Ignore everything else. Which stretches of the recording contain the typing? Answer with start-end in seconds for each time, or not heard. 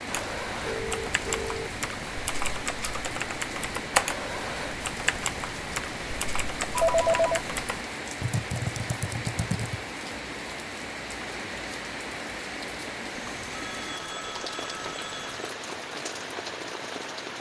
0.1-9.8.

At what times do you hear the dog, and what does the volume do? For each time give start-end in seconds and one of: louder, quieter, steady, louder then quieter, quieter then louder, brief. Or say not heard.
not heard.